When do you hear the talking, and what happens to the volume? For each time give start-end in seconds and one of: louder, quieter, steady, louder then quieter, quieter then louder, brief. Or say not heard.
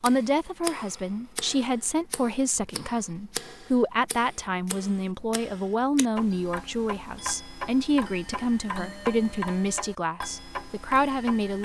0.0-11.5 steady.